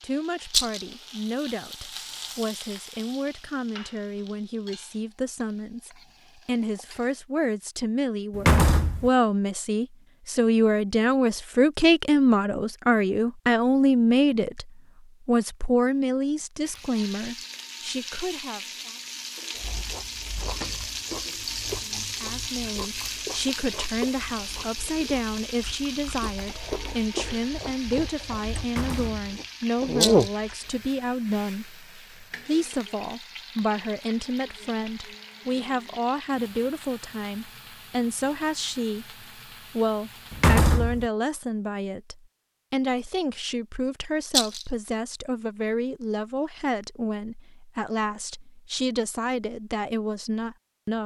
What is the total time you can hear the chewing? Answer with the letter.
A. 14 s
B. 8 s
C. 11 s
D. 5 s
C.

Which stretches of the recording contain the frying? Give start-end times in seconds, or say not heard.
0.0-7.2, 16.6-40.6.